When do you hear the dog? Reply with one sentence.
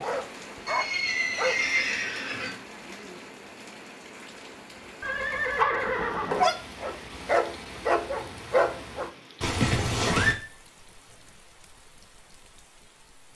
The dog can be heard from 0.0 to 1.6 s and from 5.5 to 9.1 s.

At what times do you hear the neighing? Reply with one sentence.
You can hear the neighing from 0.7 to 2.6 s, from 5.0 to 6.5 s and from 9.4 to 10.3 s.